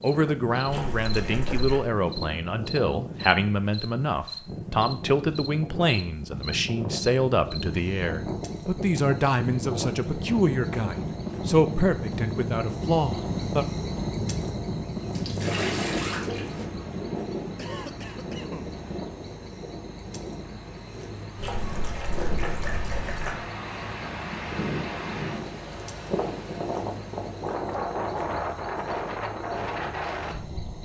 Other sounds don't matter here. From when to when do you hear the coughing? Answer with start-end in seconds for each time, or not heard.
17.6-18.7.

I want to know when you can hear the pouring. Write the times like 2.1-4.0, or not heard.
0.7-1.9, 15.2-16.6, 21.4-23.4.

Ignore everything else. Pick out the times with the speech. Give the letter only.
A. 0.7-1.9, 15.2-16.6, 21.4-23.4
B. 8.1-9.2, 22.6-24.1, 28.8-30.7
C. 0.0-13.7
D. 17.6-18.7
C.